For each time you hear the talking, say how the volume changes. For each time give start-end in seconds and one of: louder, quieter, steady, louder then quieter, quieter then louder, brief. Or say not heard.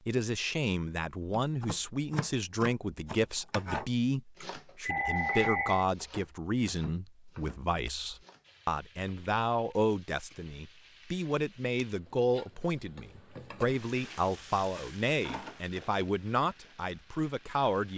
0.1-17.9 steady.